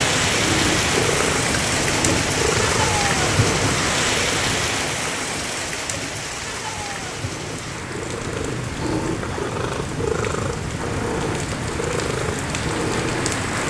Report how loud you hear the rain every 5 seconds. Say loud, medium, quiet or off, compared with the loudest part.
loud, medium, medium.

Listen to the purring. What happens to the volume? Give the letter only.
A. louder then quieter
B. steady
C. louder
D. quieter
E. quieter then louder
E.